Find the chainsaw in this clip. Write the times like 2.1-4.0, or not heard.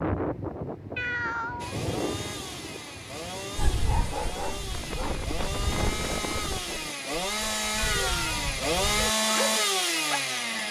1.6-10.6.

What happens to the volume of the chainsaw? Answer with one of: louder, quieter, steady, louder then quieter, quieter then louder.
louder.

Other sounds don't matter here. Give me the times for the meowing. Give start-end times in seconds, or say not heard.
0.9-1.9, 7.8-8.4.